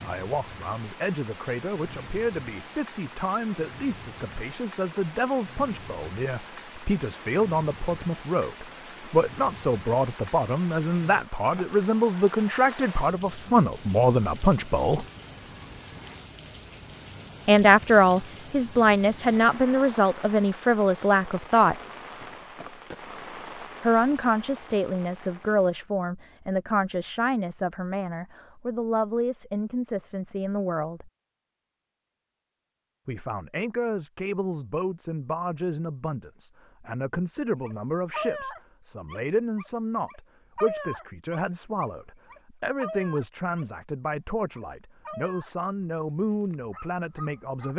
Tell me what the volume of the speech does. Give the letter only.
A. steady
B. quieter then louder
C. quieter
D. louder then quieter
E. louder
D.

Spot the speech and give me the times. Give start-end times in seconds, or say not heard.
0.0-15.1, 17.4-21.8, 23.8-31.1, 33.0-47.7.